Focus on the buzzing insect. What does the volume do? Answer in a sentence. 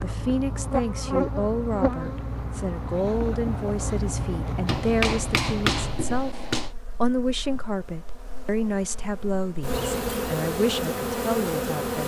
The volume of the buzzing insect goes down, then up.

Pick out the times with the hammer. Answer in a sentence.
You can hear the hammer from 4.7 to 6.7 s.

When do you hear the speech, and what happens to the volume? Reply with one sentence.
You can hear the speech from 0.0 to 12.0 s, at a steady volume.